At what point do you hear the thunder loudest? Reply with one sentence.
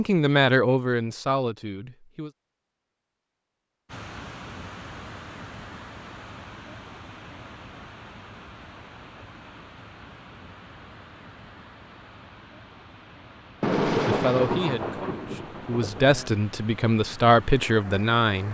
The volume of the thunder peaks at 14 seconds.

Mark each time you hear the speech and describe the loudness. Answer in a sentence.
The speech can be heard briefly from 0.0 to 2.3 s; and from 14.1 to 18.4 s, getting louder.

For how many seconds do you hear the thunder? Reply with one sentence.
You can hear the thunder for 3 seconds altogether.